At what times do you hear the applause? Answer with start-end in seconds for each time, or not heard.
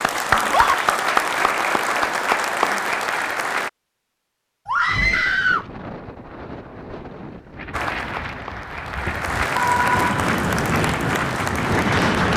0.0-3.7, 7.7-12.3.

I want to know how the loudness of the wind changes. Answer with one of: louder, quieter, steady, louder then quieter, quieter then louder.
louder.